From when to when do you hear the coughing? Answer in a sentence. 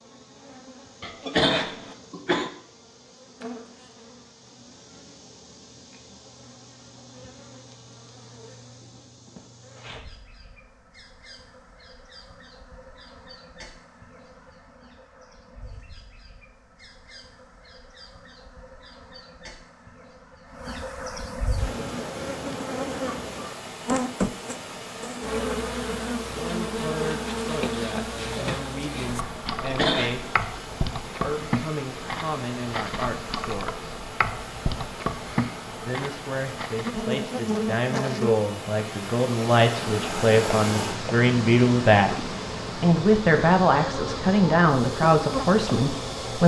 You can hear the coughing from 1.0 to 2.5 s and from 29.4 to 30.4 s.